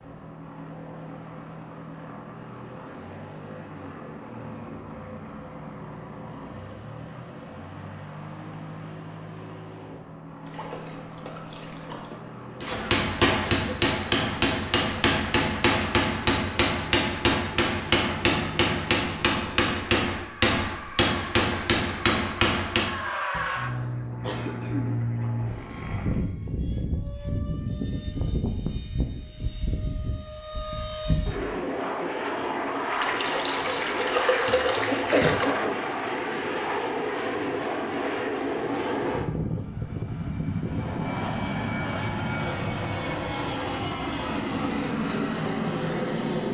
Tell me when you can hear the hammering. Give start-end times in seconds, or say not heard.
12.6-23.5.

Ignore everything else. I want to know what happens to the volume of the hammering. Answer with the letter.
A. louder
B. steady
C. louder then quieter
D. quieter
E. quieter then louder
B.